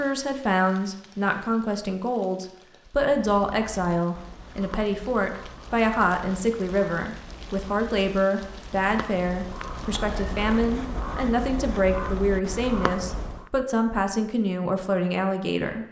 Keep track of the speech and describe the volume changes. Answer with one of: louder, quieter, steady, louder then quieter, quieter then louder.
steady.